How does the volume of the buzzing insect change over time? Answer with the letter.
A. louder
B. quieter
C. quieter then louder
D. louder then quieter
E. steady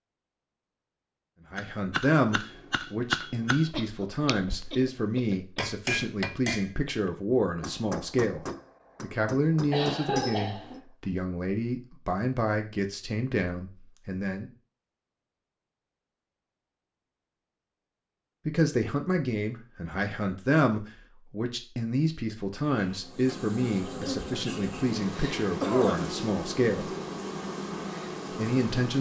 E.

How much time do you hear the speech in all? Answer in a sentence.
You can hear the speech for 22 seconds altogether.